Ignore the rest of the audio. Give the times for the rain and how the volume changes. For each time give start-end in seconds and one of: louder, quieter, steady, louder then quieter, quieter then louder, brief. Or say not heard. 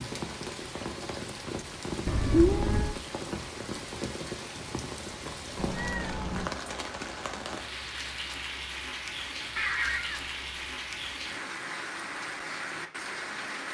0.0-13.6 steady.